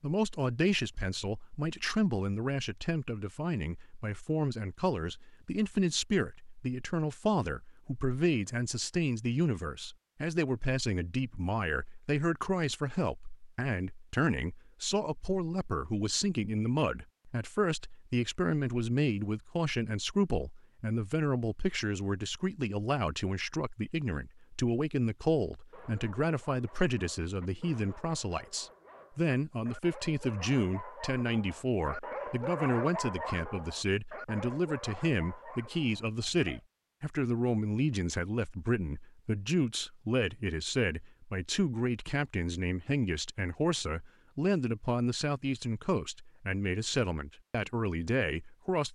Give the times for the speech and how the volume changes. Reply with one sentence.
You can hear the speech from 0.0 to 48.9 s, at a steady volume.